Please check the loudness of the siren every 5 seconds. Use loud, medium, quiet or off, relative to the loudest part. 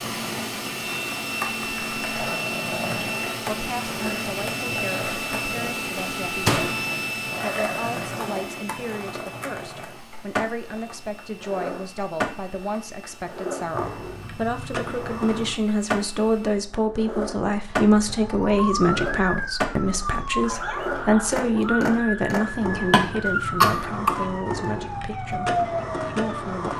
off, off, off, loud, loud, loud.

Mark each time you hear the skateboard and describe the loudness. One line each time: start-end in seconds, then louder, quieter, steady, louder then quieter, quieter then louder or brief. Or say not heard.
0.0-26.7 steady.